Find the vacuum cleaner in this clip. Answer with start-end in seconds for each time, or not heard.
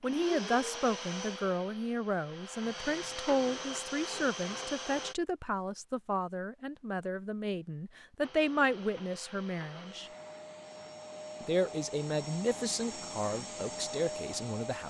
0.0-5.2, 8.2-14.8.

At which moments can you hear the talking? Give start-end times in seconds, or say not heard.
0.0-10.1, 11.4-14.8.